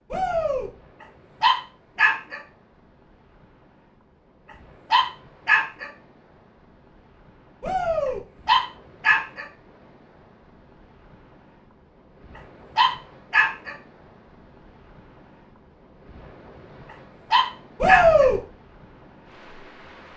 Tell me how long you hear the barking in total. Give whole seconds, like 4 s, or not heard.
5 s.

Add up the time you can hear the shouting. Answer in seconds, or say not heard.
2 s.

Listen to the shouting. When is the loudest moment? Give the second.
18 s.